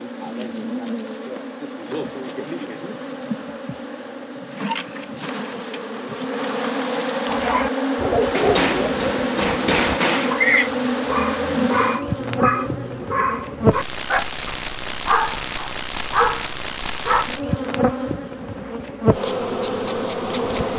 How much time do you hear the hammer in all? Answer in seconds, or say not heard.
2 s.